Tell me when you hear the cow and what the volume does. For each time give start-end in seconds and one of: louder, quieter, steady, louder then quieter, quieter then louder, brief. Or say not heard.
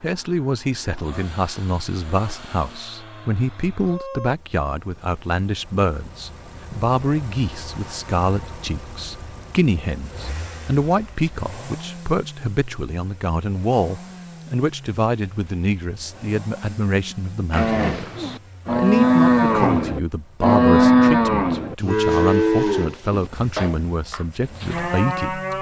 17.5-25.5 quieter.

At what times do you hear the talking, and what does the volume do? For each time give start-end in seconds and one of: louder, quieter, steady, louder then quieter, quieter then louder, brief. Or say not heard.
0.0-25.5 steady.